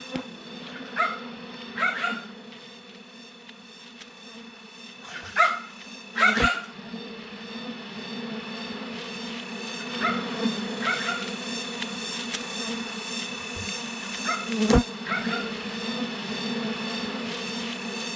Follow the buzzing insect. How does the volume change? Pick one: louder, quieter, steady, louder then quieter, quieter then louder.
louder.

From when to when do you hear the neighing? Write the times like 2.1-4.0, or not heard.
not heard.